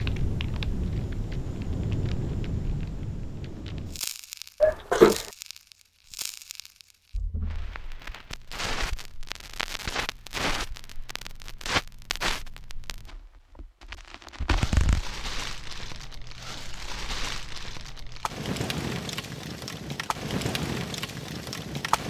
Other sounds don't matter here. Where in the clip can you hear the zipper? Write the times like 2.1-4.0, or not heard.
4.6-5.2, 14.4-15.2.